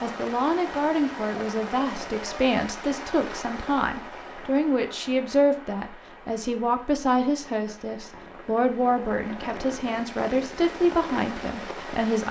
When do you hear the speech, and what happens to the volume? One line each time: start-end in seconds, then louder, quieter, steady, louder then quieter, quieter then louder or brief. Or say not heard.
0.0-12.2 steady.